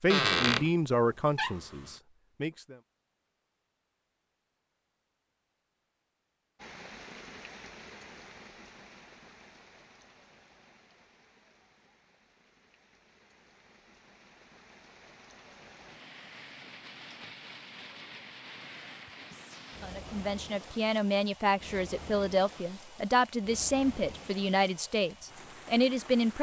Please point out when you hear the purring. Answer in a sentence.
The purring can't be heard in this clip.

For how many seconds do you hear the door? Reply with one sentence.
You can hear the door for 2 seconds altogether.